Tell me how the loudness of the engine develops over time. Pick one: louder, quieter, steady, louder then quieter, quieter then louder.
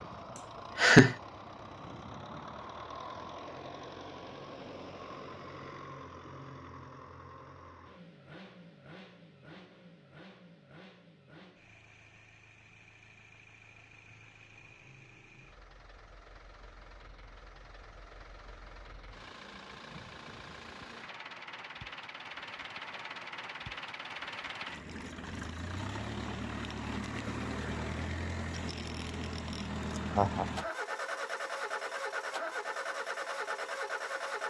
quieter then louder.